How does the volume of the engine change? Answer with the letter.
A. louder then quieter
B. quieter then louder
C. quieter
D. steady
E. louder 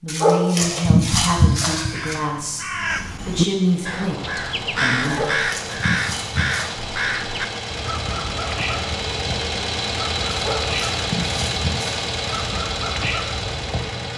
E.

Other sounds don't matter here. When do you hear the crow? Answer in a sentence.
The crow can be heard from 1.9 to 13.9 s.